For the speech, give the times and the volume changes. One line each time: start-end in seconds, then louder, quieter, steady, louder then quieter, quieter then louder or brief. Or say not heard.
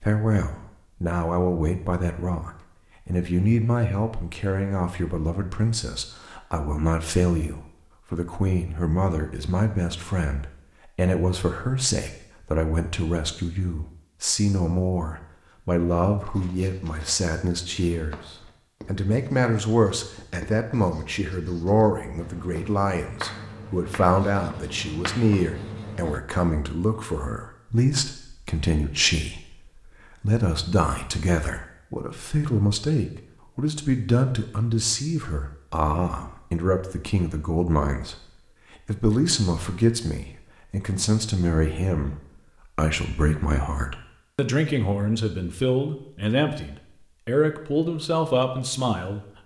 0.0-38.1 steady
38.8-49.4 steady.